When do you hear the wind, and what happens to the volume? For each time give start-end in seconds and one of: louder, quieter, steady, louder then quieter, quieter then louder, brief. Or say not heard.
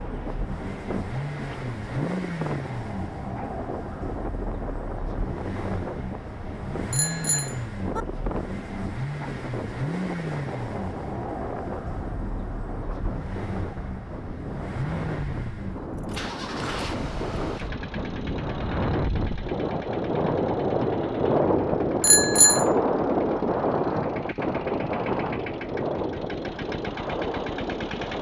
0.0-28.1 louder.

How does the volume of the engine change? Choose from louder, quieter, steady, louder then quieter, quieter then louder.
quieter.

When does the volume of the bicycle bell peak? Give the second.
22 s.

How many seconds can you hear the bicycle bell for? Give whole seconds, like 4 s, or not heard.
2 s.